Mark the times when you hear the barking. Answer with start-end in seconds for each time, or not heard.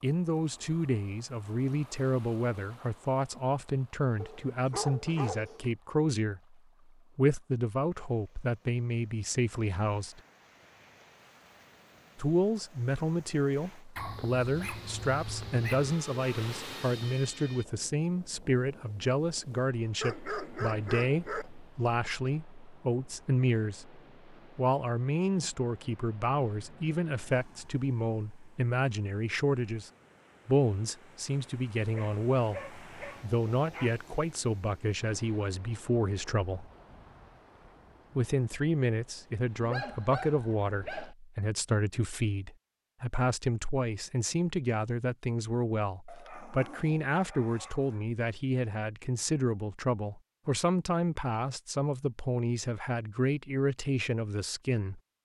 4.2-5.7, 13.9-15.9, 20.0-21.5, 31.9-34.0, 39.6-41.1, 46.0-48.0.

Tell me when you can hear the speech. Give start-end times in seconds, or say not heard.
0.0-6.5, 7.2-10.2, 12.2-36.7, 38.1-55.0.